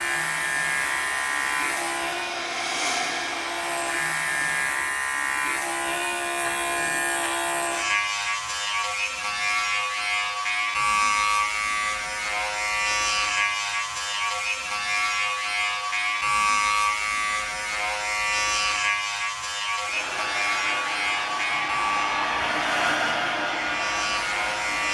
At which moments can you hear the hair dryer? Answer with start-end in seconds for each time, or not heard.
0.0-4.7, 19.8-24.8.